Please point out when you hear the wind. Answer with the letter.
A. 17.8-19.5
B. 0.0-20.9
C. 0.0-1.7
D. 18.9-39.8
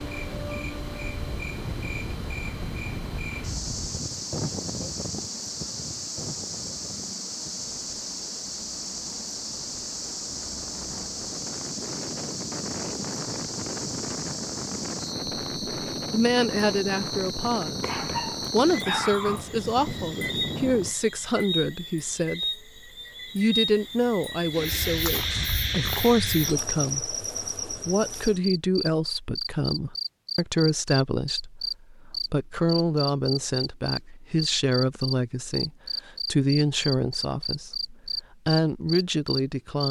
B.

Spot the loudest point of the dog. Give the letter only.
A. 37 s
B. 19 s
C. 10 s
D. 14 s
B.